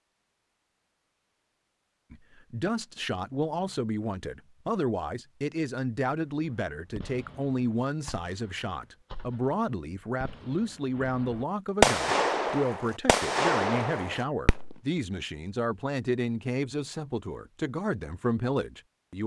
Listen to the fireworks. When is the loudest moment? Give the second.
12 s.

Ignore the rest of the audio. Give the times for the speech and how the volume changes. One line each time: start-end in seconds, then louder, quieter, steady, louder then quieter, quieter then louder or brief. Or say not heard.
2.1-19.2 steady.